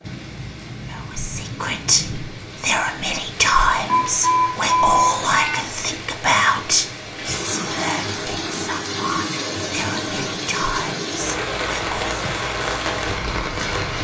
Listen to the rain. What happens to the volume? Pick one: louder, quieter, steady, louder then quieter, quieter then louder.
louder.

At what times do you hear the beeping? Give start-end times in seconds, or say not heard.
3.9-5.7.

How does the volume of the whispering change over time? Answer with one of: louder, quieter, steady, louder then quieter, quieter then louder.
quieter.